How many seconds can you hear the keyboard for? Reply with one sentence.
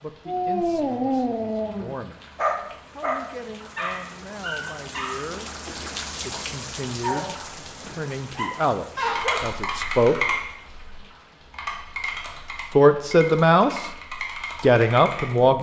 The keyboard can be heard for 6 seconds in total.